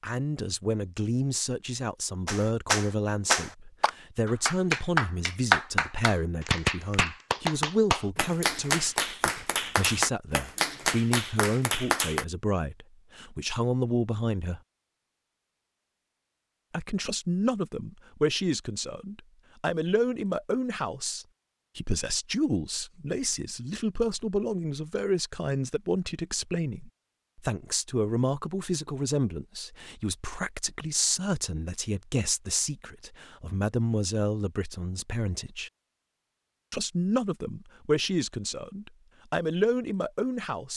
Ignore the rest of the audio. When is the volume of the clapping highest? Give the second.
6 s.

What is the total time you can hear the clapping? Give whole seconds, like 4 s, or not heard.
10 s.